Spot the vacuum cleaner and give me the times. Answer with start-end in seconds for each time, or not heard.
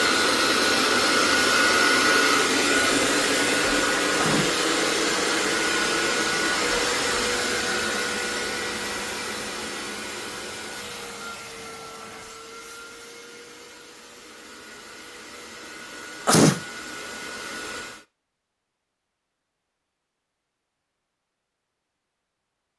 0.0-18.1.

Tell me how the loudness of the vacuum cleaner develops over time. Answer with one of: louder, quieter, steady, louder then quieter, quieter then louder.
quieter.